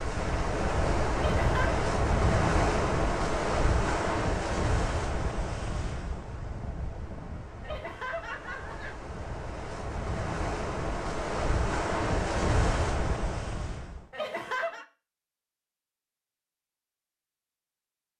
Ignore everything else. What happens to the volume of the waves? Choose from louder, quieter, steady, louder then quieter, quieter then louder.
quieter then louder.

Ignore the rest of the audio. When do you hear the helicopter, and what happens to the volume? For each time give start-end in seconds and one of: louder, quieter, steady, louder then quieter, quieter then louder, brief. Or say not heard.
not heard.